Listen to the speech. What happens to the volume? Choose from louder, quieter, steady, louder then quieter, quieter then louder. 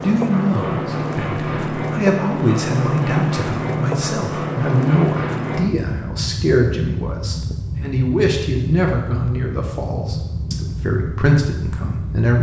steady.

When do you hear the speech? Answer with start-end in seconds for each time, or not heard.
0.0-12.3.